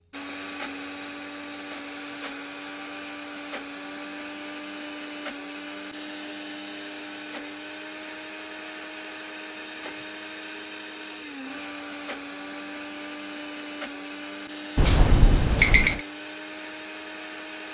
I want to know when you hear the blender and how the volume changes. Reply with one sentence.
You can hear the blender from 0.1 to 17.6 s, at a steady volume.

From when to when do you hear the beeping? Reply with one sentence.
You can hear the beeping from 14.8 to 16.0 s.